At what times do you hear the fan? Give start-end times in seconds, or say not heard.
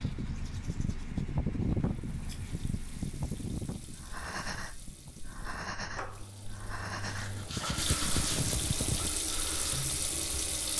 0.0-9.1.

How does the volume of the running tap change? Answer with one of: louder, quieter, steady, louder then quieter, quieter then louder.
louder.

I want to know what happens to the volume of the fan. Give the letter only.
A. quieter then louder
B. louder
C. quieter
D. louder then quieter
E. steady
A.